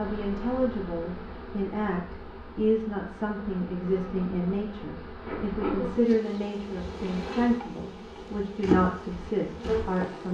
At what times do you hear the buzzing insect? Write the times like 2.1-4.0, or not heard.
0.0-10.2.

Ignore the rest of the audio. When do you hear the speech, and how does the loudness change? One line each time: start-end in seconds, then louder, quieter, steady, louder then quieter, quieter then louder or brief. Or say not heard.
0.0-10.2 steady.